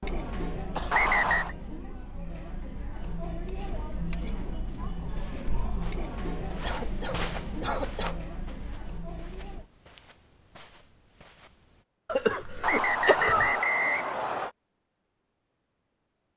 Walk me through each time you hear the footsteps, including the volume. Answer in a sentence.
You can hear the footsteps from 4.7 to 11.8 s, getting louder then quieter.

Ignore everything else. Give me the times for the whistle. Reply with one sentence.
You can hear the whistle from 0.9 to 1.6 s and from 12.6 to 14.5 s.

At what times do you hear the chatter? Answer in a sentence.
You can hear the chatter from 0.0 to 9.7 s.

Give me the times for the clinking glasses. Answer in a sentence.
You can't hear the clinking glasses here.